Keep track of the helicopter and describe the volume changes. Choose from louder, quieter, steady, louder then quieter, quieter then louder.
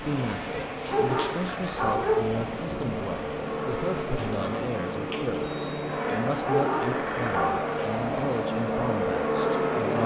louder.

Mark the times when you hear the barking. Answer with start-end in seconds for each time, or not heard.
0.5-2.4, 6.0-7.5.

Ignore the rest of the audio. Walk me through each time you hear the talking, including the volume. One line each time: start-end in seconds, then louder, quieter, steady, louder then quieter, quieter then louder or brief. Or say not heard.
0.0-10.0 steady.